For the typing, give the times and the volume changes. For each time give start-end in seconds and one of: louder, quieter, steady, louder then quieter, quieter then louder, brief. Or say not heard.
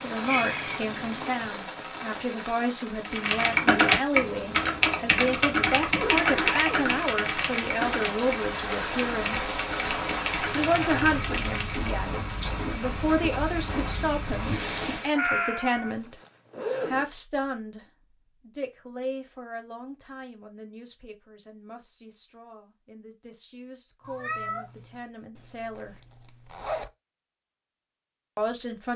3.0-11.9 quieter.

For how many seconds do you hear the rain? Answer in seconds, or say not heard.
15 s.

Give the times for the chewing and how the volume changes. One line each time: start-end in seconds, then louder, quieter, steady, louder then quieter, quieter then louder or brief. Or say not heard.
not heard.